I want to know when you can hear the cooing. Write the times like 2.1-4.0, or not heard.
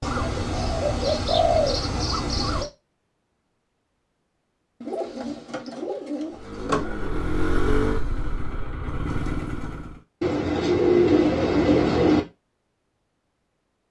0.0-2.7, 4.8-6.9, 10.2-12.2.